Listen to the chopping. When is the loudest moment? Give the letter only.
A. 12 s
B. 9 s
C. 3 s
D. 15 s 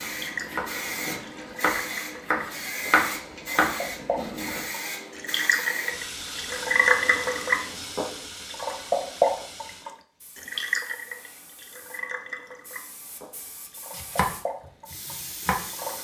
C.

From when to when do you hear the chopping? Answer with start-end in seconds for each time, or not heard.
0.0-4.7, 13.9-15.7.